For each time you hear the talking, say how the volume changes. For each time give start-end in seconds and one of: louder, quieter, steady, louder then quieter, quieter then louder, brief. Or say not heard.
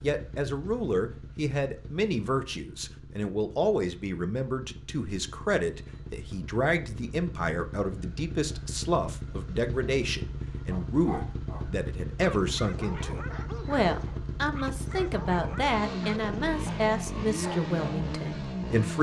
0.0-18.9 steady.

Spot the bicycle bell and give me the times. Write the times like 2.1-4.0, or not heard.
not heard.